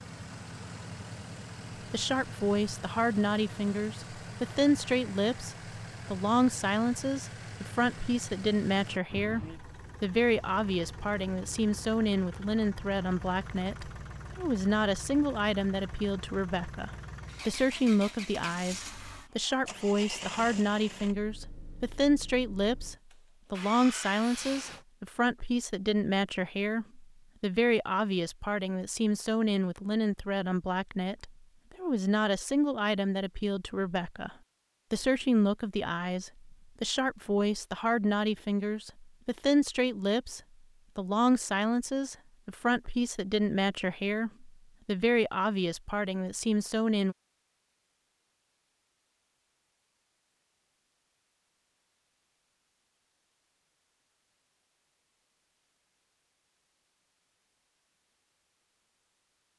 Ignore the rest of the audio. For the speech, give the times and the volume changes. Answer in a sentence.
The speech can be heard from 1.9 to 47.1 s, at a steady volume.